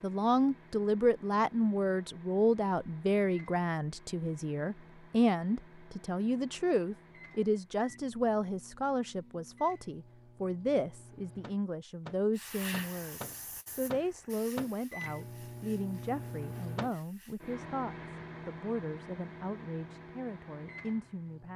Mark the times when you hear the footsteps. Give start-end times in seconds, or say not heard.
not heard.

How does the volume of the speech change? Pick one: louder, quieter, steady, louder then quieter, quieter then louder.
quieter.